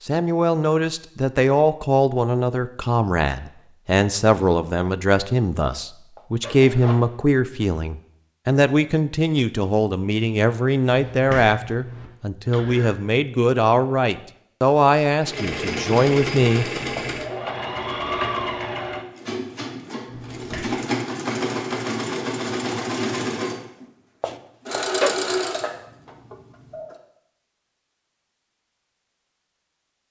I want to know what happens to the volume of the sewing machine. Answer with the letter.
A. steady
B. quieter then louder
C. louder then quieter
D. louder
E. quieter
A.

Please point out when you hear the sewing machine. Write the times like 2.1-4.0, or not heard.
15.2-27.0.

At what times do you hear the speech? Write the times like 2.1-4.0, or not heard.
0.0-16.7.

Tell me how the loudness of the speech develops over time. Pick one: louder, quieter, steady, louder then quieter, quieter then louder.
steady.